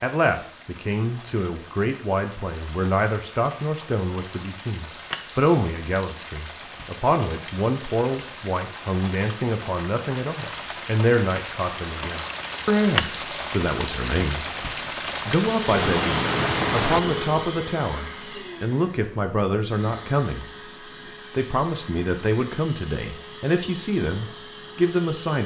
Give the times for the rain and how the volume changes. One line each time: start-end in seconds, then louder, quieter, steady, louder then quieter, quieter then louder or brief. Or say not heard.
0.0-17.4 louder.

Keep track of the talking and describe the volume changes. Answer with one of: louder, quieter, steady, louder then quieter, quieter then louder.
steady.